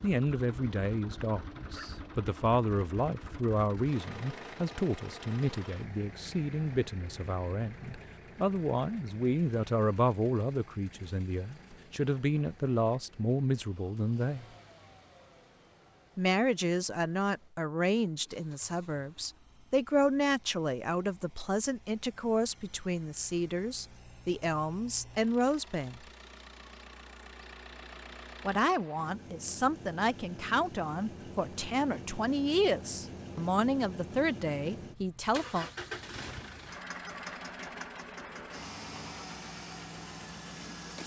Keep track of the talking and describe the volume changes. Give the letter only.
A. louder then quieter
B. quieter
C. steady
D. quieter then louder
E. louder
C.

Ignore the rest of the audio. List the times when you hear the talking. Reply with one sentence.
The talking can be heard from 0.0 to 14.4 s, from 16.1 to 26.0 s and from 28.4 to 35.7 s.